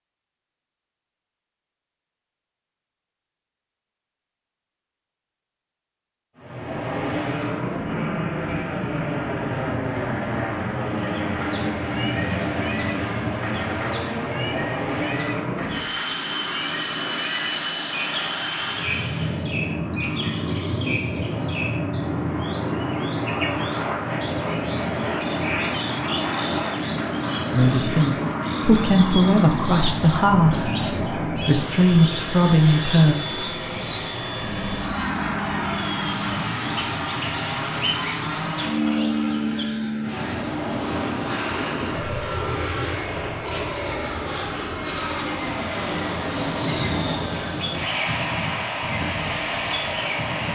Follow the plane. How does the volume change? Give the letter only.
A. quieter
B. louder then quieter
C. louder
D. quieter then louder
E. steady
E.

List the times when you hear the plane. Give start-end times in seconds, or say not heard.
6.3-50.5.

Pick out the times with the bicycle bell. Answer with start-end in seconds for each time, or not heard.
not heard.